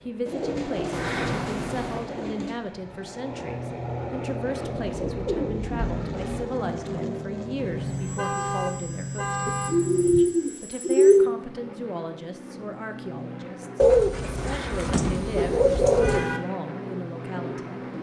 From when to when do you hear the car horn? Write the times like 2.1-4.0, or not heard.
0.9-2.0, 7.5-10.2, 14.3-16.4.